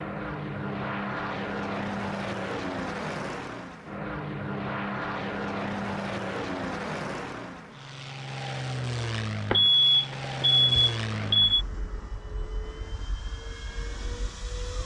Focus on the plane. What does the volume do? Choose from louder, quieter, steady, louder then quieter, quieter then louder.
quieter.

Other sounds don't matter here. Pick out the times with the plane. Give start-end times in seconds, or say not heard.
0.0-14.8.